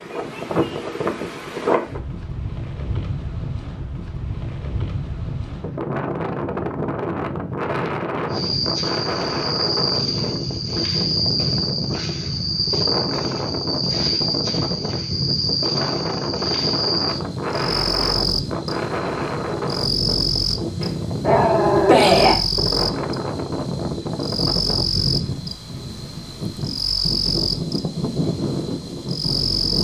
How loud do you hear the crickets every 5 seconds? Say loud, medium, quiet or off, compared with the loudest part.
off, loud, loud, loud, loud, loud.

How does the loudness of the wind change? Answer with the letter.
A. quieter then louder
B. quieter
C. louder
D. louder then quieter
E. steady
E.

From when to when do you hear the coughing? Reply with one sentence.
The coughing can't be heard in this clip.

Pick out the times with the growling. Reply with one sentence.
You can hear the growling from 20.8 to 22.4 s.